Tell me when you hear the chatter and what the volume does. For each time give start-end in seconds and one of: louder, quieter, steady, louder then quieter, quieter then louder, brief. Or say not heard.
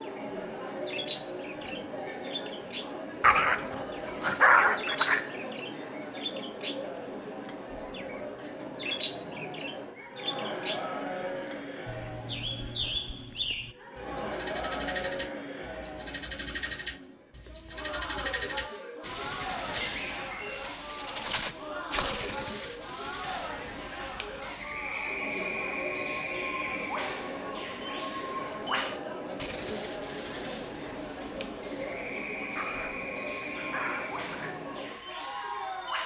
0.0-36.0 steady.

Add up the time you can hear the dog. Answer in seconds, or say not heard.
4 s.